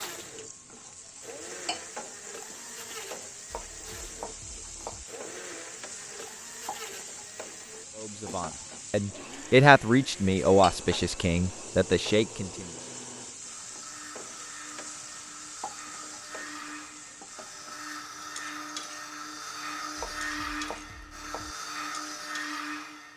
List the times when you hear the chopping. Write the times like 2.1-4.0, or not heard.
3.5-5.0, 19.9-21.6.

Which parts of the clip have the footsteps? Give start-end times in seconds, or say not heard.
not heard.